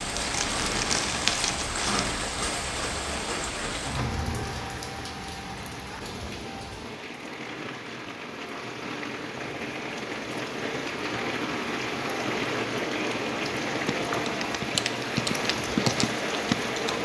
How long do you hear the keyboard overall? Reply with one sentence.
The keyboard can be heard for 3 seconds in total.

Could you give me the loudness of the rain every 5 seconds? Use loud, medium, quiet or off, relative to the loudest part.
loud, medium, loud, loud.